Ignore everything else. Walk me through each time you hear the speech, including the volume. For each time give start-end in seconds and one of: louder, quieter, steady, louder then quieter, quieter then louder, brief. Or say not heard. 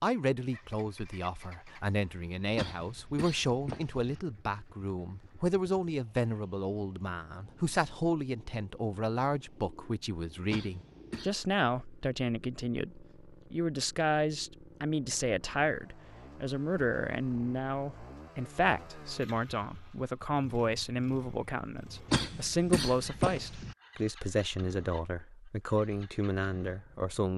0.0-27.3 steady.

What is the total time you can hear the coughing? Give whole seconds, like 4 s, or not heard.
4 s.